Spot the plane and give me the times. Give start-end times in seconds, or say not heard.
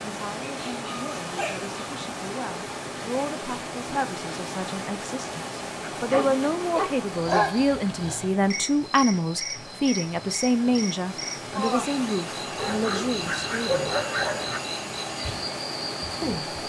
not heard.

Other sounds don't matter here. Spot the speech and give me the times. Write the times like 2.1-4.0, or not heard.
0.0-13.9, 16.2-16.6.